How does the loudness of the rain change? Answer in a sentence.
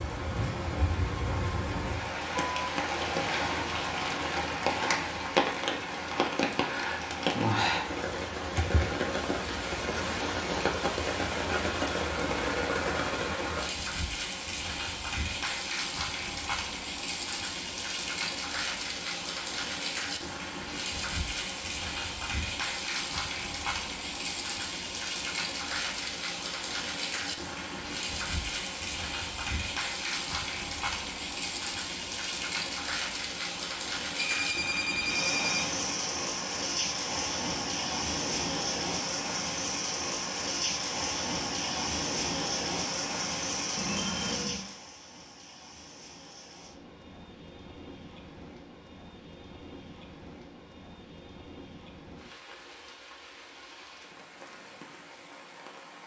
The loudness of the rain goes down.